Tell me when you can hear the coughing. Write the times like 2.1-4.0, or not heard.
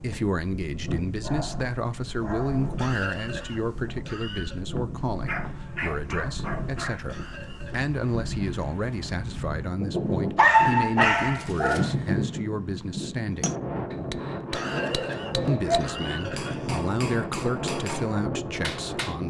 2.8-4.6, 7.0-7.9, 14.5-16.8.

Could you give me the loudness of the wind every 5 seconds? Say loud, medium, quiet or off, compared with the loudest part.
medium, medium, loud, loud.